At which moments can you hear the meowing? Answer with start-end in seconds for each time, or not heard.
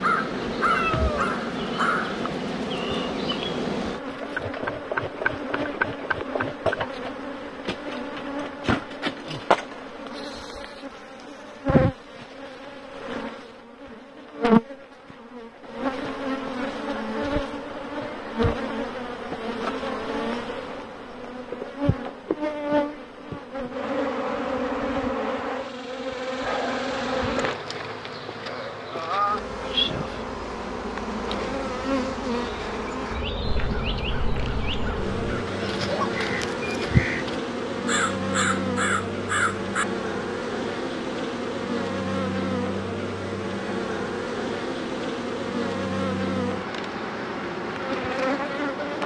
0.7-1.4.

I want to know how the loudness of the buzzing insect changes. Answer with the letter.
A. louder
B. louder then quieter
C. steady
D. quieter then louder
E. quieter
C.